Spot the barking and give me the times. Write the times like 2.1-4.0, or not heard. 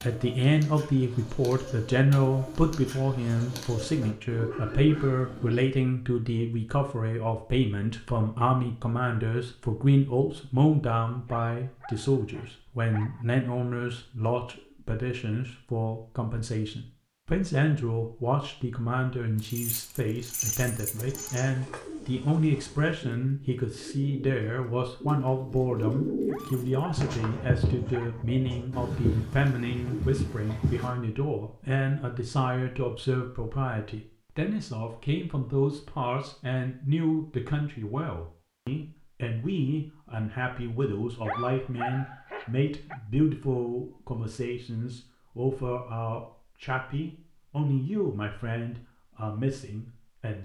11.2-13.2, 26.2-28.2, 41.2-43.0.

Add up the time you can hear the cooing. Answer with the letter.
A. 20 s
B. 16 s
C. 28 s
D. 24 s
B.